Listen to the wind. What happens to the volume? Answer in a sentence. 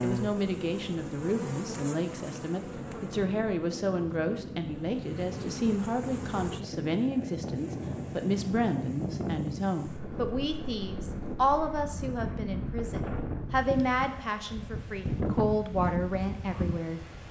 The loudness of the wind goes up.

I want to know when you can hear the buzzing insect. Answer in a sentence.
The buzzing insect can be heard from 0.0 to 6.6 s.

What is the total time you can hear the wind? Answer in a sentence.
You can hear the wind for 17 seconds altogether.